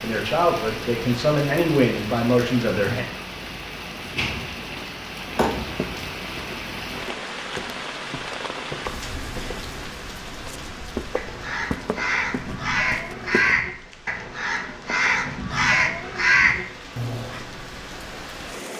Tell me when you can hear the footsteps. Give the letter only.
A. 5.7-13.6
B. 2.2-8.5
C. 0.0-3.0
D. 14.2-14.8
A.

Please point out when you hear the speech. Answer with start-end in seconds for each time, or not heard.
0.0-3.0.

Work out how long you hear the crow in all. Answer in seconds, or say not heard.
6 s.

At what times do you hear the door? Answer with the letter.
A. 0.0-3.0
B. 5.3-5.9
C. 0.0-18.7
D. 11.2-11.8
B.